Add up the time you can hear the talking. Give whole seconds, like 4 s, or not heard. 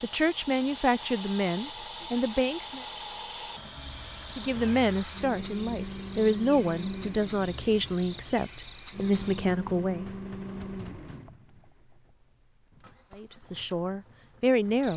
10 s.